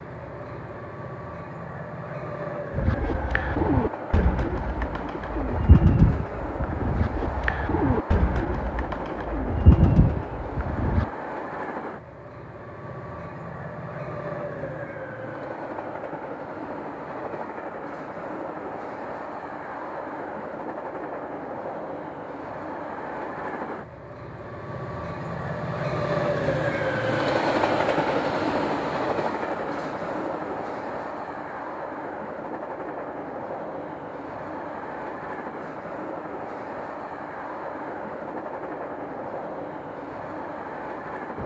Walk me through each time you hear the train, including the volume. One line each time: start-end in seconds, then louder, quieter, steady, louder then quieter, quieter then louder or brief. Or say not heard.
0.0-41.4 louder then quieter.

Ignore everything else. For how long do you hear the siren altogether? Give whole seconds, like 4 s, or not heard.
not heard.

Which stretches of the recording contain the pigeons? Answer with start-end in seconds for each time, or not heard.
2.7-11.1.